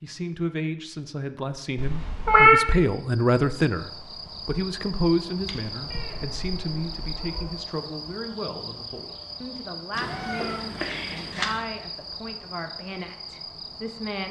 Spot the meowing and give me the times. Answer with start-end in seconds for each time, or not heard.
1.8-2.6, 5.5-7.5, 9.9-11.6.